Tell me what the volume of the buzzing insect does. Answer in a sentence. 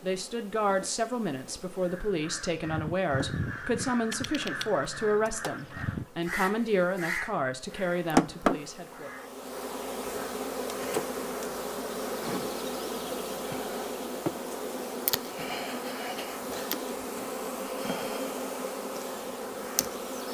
The loudness of the buzzing insect goes up.